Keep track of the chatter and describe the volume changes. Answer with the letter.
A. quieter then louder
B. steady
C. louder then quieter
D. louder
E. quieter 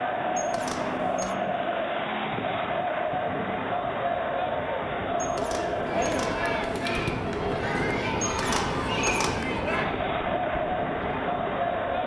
B.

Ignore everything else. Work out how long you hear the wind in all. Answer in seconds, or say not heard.
12 s.